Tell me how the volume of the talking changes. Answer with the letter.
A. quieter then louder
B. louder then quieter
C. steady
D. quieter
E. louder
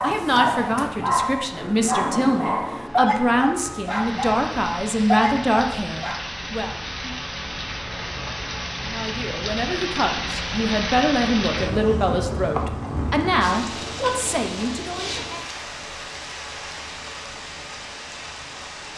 C.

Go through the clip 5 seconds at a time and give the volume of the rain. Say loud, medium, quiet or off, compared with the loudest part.
medium, loud, loud, medium.